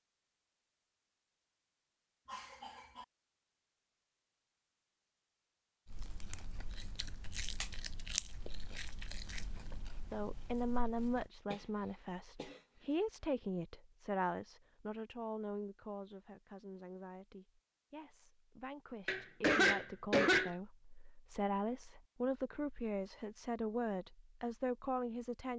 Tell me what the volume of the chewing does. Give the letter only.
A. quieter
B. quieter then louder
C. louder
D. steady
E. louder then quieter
E.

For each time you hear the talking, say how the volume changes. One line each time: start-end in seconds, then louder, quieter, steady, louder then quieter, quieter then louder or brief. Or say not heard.
10.1-25.5 quieter then louder.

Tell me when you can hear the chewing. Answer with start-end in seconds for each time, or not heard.
5.8-11.3.